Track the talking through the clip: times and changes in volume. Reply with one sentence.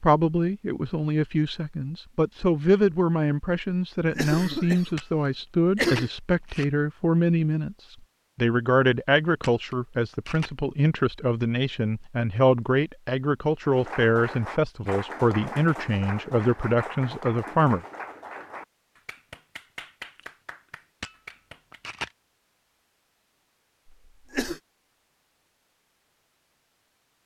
You can hear the talking from 0.0 to 17.8 s, at a steady volume.